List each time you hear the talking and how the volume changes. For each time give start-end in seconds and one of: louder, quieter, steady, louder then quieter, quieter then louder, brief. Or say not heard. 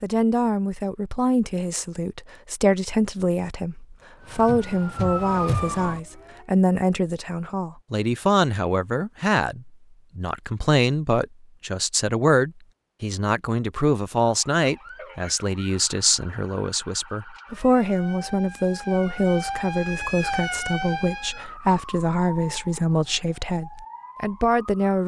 0.0-25.0 steady.